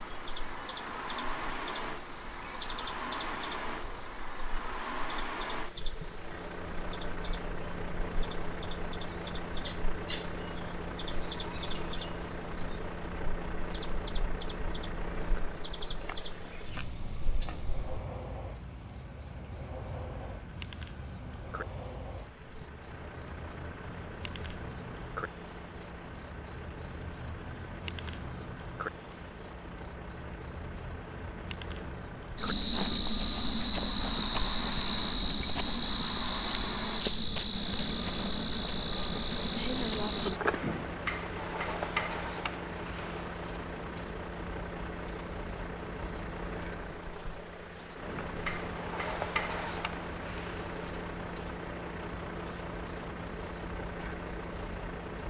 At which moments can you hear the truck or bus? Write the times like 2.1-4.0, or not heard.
0.0-55.2.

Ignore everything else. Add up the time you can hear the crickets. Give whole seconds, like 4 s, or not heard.
55 s.